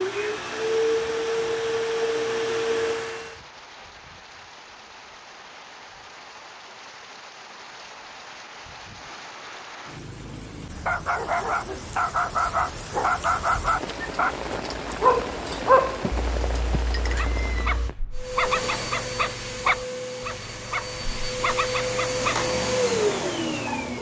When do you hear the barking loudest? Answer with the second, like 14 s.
16 s.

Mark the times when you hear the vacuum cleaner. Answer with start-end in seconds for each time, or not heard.
0.0-3.4, 18.1-23.9.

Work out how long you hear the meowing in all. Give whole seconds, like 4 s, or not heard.
2 s.